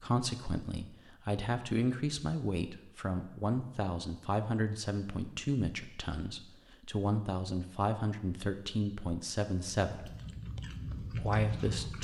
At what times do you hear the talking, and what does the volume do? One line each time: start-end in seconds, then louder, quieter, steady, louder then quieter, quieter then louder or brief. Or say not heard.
0.0-10.2 steady
11.2-11.9 brief.